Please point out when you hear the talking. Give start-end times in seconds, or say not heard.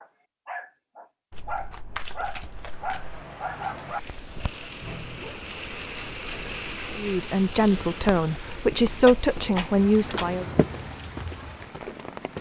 7.0-10.4.